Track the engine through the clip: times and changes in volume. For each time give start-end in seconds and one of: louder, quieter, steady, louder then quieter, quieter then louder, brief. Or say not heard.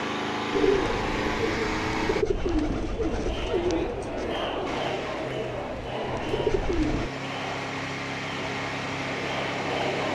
0.0-2.2 brief
4.7-10.0 louder.